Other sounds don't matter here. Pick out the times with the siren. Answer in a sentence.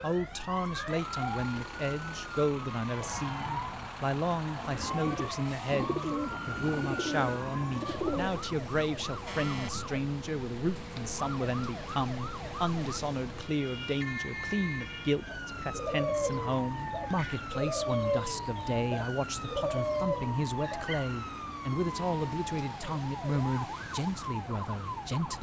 The siren can be heard from 0.0 to 25.3 s.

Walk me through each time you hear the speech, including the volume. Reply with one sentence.
The speech can be heard from 0.0 to 25.3 s, at a steady volume.